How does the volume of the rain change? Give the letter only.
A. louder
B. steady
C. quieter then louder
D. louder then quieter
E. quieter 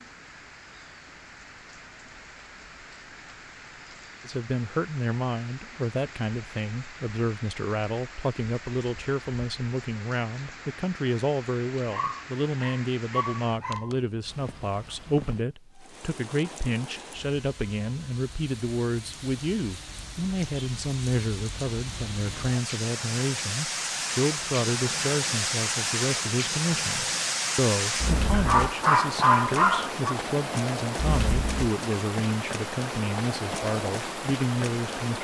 A.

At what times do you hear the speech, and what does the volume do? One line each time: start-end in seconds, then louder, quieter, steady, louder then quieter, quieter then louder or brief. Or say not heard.
4.2-35.1 steady.